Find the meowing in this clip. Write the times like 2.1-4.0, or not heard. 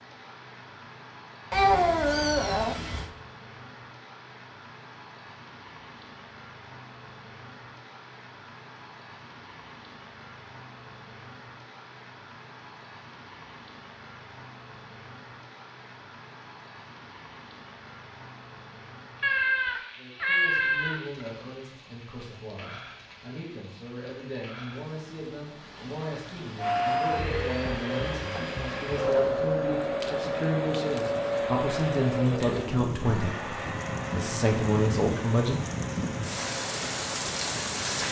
1.5-3.1, 19.2-21.2.